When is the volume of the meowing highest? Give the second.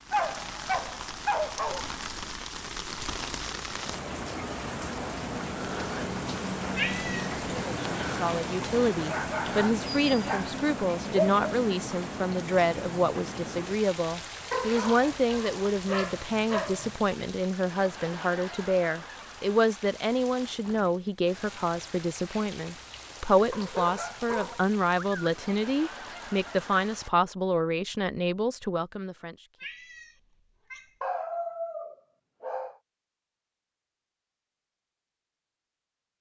7 s.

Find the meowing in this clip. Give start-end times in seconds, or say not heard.
6.8-7.3, 29.6-30.9.